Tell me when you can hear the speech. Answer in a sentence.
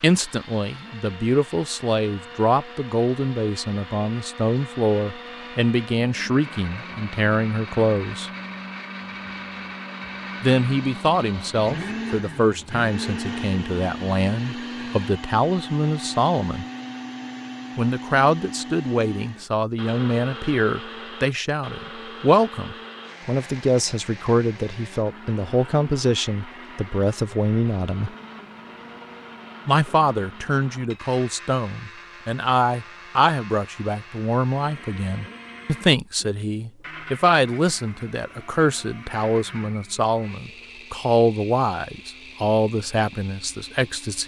The speech can be heard from 0.0 to 8.3 s, from 10.4 to 16.6 s, from 17.8 to 28.1 s and from 29.6 to 44.2 s.